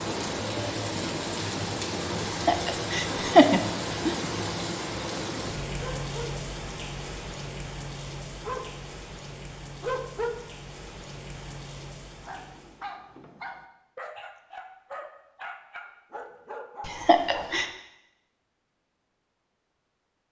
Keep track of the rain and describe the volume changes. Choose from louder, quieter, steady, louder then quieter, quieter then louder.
quieter.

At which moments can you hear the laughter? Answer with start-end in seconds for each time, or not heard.
2.5-4.1, 16.9-17.7.